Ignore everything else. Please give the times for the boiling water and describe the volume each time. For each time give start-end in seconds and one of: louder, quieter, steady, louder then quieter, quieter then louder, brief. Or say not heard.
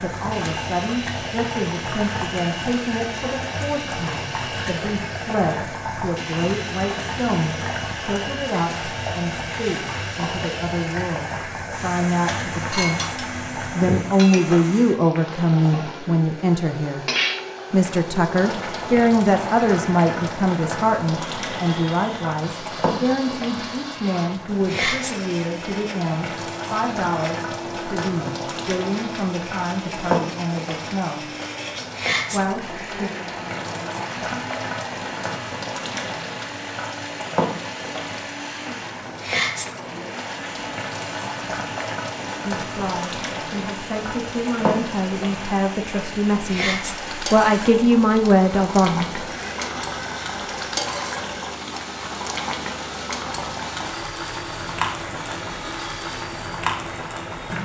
0.0-57.6 steady.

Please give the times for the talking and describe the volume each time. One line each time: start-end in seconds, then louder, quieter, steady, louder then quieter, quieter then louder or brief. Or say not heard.
0.0-17.1 louder
17.7-31.2 quieter
32.3-33.1 brief
42.5-49.2 louder.